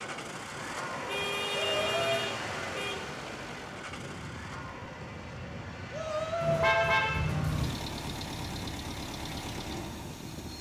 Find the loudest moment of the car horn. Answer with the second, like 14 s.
7 s.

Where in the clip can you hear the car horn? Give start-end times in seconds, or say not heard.
1.1-3.0, 6.4-7.8.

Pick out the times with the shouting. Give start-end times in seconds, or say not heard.
1.6-2.3, 5.9-7.0.